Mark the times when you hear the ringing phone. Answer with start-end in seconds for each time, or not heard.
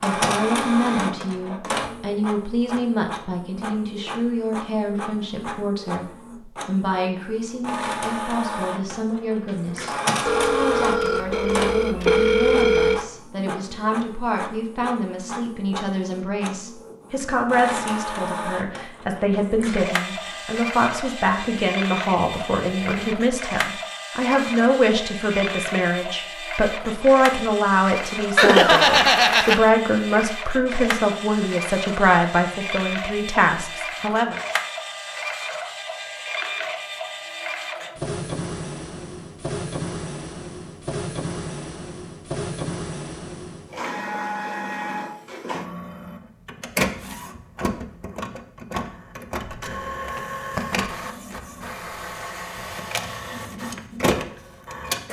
10.2-13.0, 28.4-29.6.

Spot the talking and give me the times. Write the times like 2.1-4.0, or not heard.
0.0-6.0, 6.7-34.4.